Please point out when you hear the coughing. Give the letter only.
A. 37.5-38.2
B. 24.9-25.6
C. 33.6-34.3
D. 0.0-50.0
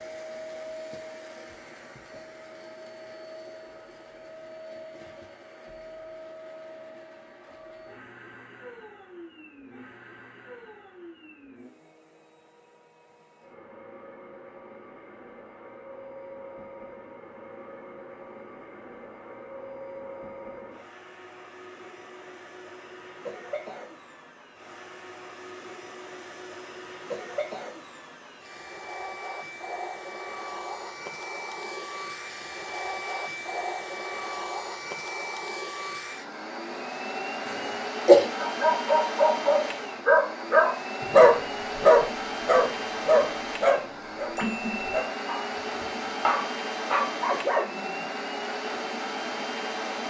A.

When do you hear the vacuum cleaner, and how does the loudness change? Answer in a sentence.
You can hear the vacuum cleaner from 0.0 to 50.0 s, getting louder.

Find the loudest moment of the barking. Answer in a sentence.
The loudest moment of the barking is at 41 seconds.